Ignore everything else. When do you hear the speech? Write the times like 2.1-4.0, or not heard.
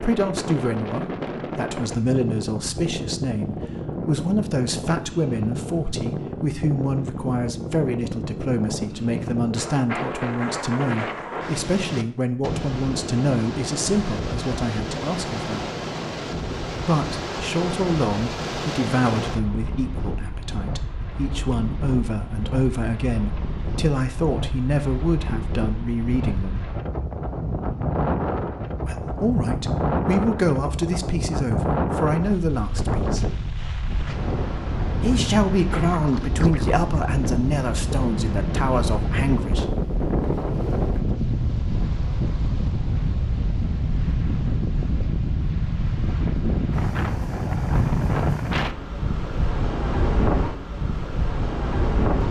0.0-15.6, 16.8-26.6, 28.8-33.2, 35.0-39.6.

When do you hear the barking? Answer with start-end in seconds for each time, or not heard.
not heard.